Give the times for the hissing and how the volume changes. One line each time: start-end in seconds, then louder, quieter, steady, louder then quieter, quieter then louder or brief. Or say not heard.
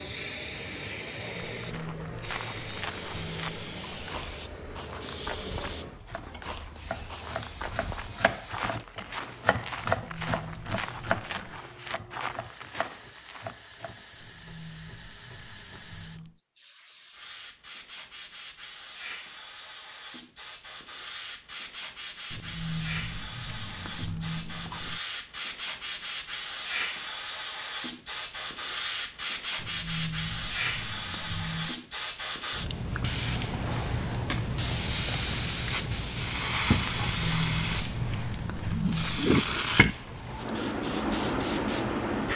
0.0-42.3 quieter then louder.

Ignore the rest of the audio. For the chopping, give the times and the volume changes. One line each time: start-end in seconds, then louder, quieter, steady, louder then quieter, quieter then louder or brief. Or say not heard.
6.0-14.2 louder then quieter.